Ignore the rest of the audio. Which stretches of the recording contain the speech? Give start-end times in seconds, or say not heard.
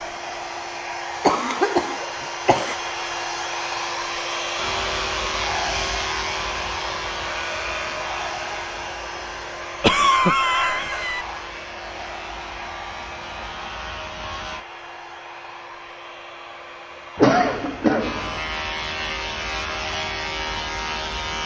not heard.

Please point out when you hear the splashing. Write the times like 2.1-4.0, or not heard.
not heard.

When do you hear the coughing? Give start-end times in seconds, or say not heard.
1.2-2.8, 9.8-11.2, 17.1-18.4.